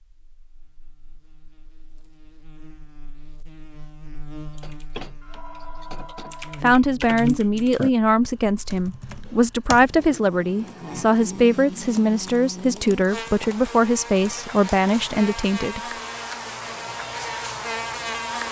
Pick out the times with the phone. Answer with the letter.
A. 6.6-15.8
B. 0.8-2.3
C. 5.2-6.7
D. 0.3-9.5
C.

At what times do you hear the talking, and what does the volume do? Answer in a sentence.
The talking can be heard from 6.6 to 15.8 s, at a steady volume.